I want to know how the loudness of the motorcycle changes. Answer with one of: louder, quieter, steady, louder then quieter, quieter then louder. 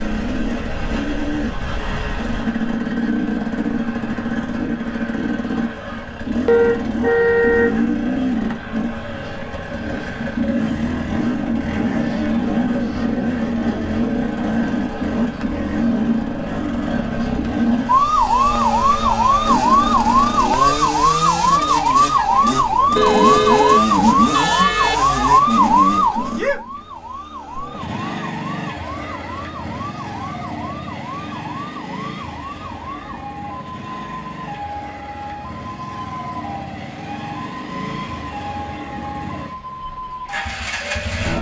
quieter.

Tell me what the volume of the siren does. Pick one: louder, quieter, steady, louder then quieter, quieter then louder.
quieter.